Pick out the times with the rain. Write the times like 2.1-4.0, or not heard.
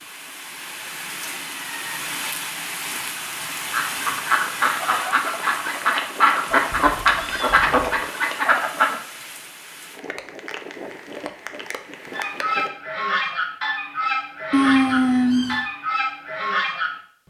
0.0-12.7.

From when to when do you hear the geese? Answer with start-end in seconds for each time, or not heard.
3.7-8.9, 12.1-17.2.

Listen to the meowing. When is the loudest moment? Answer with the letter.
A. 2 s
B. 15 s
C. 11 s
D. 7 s
B.